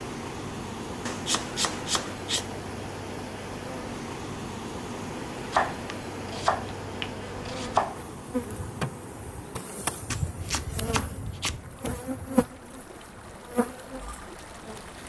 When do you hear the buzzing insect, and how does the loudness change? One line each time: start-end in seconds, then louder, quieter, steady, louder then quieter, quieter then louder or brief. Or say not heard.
0.0-15.0 louder.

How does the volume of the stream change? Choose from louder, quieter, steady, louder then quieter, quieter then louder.
quieter.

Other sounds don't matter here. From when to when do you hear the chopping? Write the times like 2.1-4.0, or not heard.
1.1-2.5, 5.5-8.0, 10.1-11.6.